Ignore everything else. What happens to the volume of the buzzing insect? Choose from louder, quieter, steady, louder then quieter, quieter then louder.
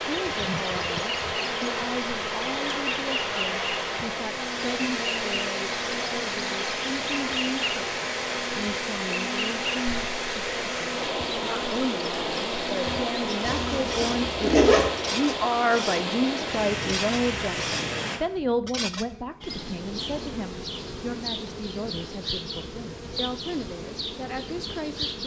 steady.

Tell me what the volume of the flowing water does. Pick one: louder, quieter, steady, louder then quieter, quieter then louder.
steady.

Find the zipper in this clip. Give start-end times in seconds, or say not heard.
13.4-14.9.